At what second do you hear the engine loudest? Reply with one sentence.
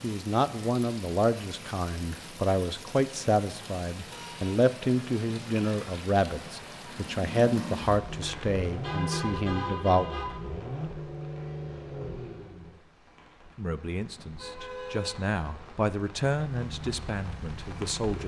The loudest moment of the engine is at 9 seconds.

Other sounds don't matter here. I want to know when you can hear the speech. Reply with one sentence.
The speech can be heard from 0.0 to 10.1 s and from 13.6 to 18.2 s.